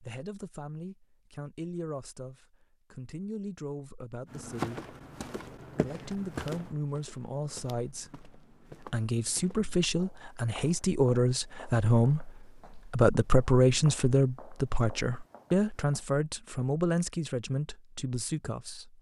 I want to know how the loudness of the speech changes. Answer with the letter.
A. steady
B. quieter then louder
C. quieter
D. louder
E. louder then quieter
E.